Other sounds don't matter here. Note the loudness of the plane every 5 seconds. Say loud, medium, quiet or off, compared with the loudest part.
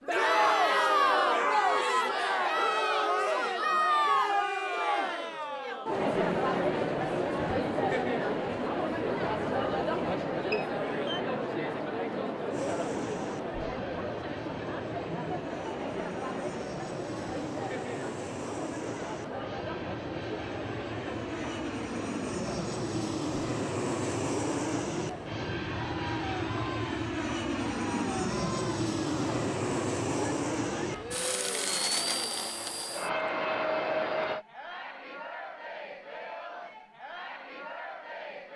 off, off, medium, medium, loud, loud, loud, off.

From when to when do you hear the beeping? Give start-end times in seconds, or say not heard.
10.5-11.2.